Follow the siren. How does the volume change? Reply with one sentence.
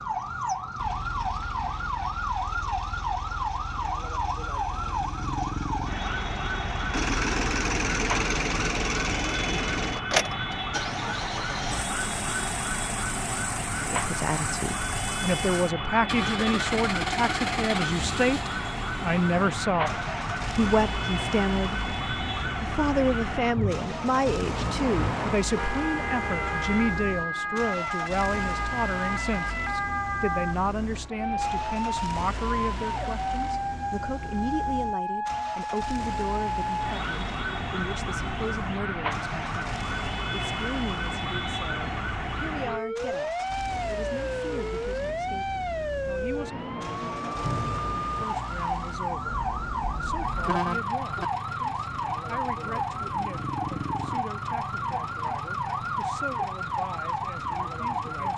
The loudness of the siren stays about the same.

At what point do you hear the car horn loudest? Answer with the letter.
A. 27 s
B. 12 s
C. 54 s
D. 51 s
D.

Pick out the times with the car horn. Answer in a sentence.
The car horn can be heard from 25.5 to 27.0 s and from 49.2 to 51.2 s.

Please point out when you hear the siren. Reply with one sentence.
You can hear the siren from 0.0 to 58.3 s.